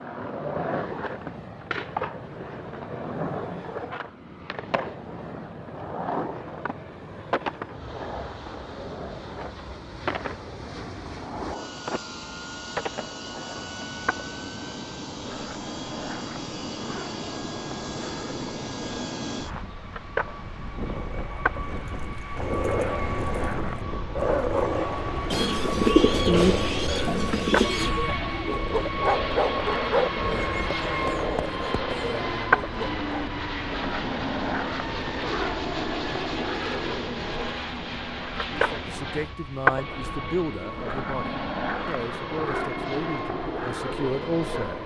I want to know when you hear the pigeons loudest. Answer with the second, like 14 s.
26 s.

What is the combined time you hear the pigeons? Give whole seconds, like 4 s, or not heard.
3 s.